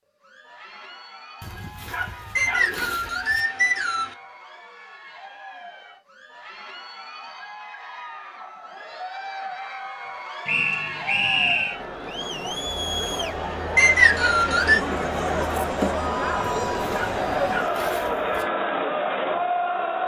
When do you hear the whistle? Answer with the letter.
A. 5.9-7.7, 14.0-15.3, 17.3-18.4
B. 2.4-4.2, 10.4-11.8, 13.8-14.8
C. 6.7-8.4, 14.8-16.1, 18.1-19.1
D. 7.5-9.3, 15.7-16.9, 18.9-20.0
B.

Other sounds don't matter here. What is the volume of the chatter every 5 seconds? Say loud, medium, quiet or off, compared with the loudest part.
quiet, quiet, medium, loud.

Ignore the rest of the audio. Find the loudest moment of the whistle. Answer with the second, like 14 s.
14 s.